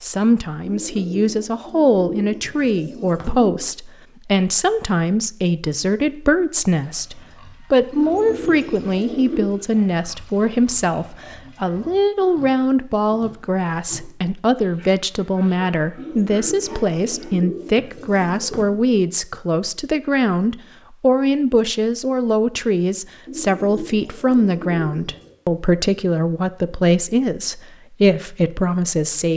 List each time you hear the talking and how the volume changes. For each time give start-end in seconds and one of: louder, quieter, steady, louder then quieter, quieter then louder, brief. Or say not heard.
0.0-29.3 steady.